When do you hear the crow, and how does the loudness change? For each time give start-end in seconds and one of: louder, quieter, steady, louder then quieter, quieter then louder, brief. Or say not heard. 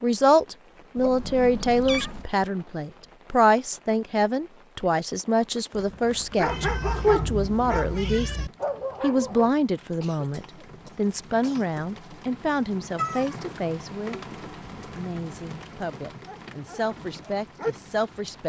not heard.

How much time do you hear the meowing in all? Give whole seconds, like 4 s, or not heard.
4 s.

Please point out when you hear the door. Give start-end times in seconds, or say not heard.
not heard.